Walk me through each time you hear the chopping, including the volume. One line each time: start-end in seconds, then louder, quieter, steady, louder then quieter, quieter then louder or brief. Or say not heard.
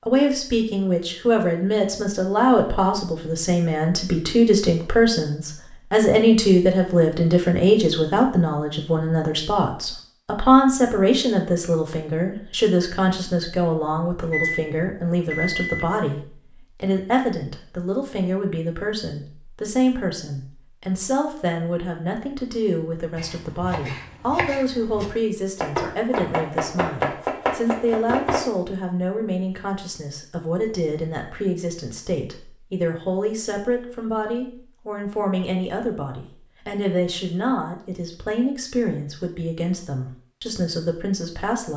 23.1-28.4 louder.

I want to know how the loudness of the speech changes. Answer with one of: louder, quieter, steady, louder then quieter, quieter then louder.
quieter.